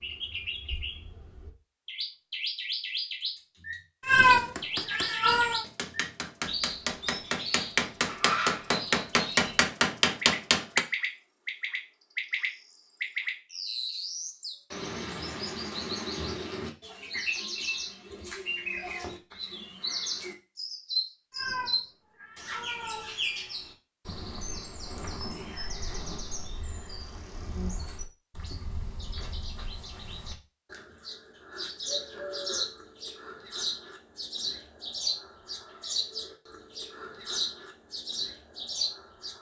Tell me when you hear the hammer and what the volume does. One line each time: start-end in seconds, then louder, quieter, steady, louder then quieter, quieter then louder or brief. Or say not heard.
4.4-10.8 louder.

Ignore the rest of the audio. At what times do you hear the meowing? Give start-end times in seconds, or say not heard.
4.0-5.7, 21.4-23.1.